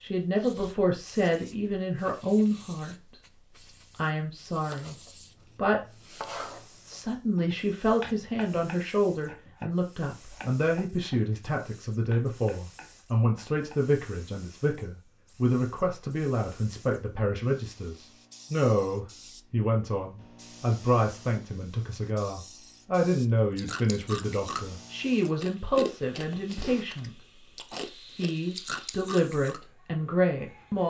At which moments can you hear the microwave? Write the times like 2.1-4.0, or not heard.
not heard.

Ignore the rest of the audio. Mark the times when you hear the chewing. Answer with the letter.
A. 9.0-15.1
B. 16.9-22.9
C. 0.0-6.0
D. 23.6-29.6
D.